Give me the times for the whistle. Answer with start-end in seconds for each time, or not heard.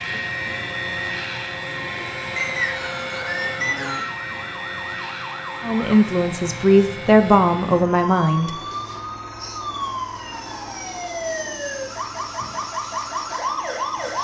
2.4-4.2.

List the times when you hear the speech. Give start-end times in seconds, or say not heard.
5.6-8.5.